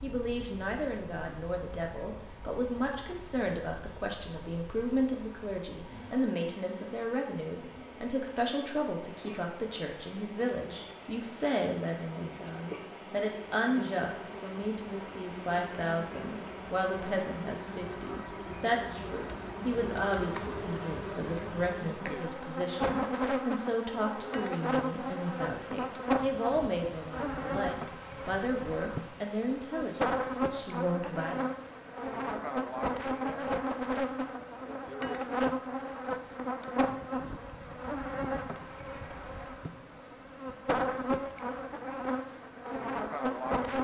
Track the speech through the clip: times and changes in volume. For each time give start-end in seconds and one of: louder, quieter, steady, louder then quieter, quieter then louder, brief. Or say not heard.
0.0-31.4 steady.